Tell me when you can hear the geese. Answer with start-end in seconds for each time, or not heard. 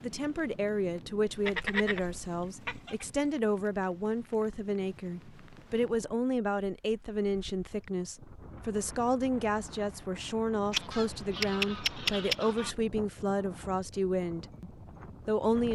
1.2-3.0, 10.7-12.8.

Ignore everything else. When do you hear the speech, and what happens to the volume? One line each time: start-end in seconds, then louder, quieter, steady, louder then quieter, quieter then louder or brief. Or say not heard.
0.0-15.7 steady.